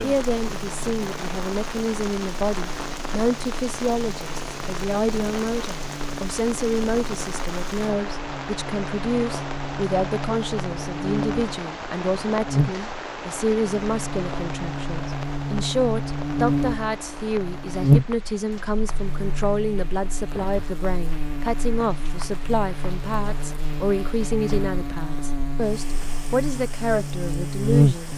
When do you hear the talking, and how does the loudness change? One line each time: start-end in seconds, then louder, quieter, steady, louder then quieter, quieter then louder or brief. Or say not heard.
0.0-28.1 steady.